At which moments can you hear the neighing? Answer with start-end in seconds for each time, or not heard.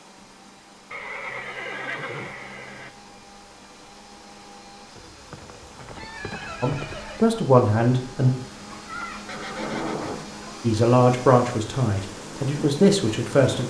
0.9-2.9, 5.0-7.3, 9.2-10.6.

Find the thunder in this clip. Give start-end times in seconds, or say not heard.
8.7-10.2.